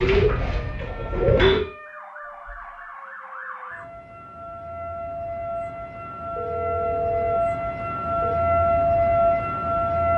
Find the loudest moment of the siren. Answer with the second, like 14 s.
9 s.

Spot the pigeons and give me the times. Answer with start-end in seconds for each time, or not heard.
0.0-1.6.